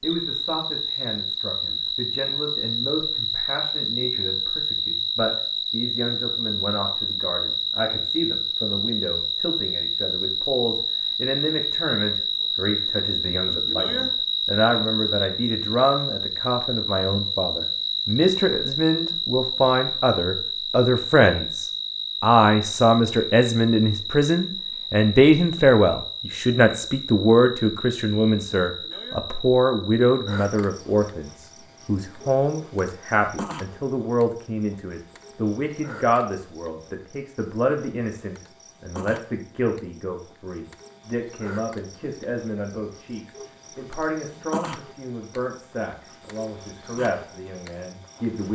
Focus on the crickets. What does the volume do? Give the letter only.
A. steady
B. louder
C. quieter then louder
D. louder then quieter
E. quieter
E.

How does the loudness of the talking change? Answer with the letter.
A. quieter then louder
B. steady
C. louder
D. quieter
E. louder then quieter
E.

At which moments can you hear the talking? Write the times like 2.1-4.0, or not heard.
0.0-48.4.